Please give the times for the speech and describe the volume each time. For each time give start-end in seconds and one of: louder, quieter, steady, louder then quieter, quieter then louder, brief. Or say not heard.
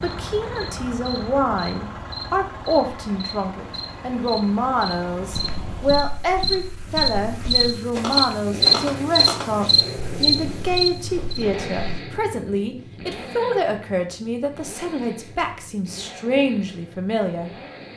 0.0-17.5 steady.